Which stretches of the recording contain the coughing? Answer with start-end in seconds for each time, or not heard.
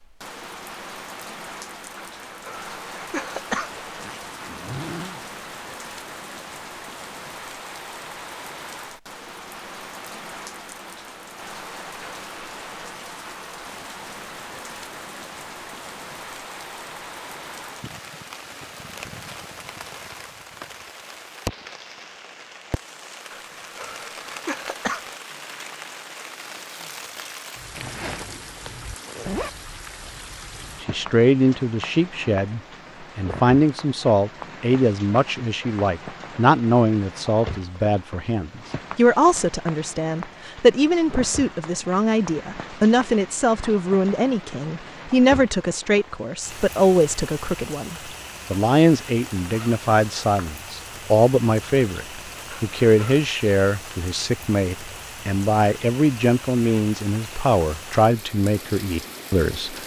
1.9-3.9, 23.3-25.1, 52.5-53.3.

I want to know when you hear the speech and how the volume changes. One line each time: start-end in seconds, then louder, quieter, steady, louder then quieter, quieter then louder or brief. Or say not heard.
30.8-59.8 steady.